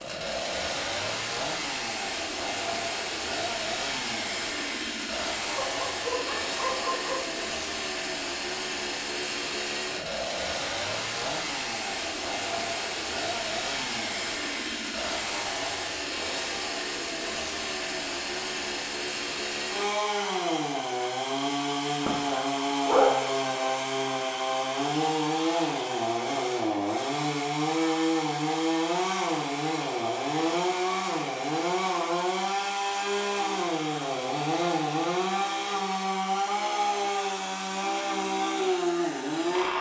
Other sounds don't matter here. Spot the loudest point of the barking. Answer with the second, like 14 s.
23 s.